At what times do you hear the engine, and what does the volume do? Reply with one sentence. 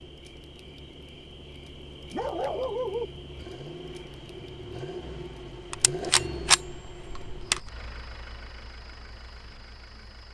You can hear the engine from 0.0 to 10.2 s, getting louder then quieter.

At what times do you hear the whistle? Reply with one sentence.
The whistle can't be heard in this clip.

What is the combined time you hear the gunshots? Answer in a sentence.
The gunshots can be heard for 2 seconds in total.